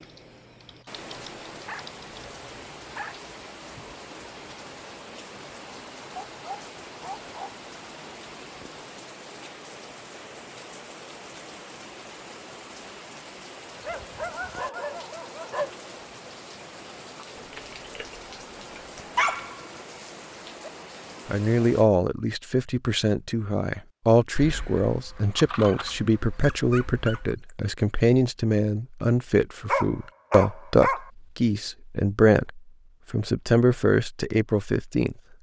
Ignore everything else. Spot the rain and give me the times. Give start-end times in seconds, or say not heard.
0.0-21.9.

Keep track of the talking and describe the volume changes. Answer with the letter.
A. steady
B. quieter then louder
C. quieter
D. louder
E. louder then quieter
A.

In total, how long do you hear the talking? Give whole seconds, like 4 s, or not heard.
14 s.